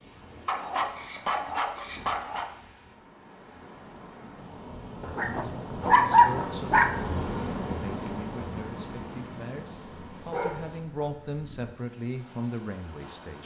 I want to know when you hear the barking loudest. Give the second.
6 s.